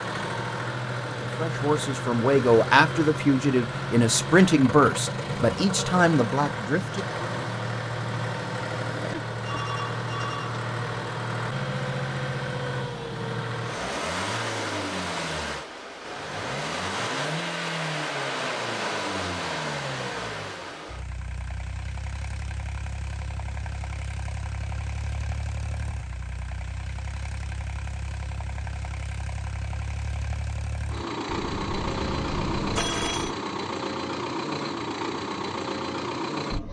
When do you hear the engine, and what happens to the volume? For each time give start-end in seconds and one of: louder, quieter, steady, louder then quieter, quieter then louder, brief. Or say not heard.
0.0-36.6 quieter then louder.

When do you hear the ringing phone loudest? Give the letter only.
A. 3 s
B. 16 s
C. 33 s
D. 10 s
C.